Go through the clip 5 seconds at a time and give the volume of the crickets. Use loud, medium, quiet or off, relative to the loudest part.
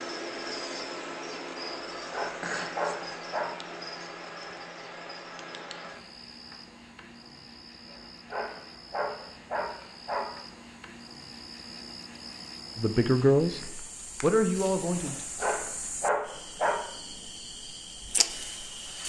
loud, medium, medium, loud.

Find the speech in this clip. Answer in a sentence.
You can hear the speech from 12.8 to 13.5 s and from 14.2 to 15.2 s.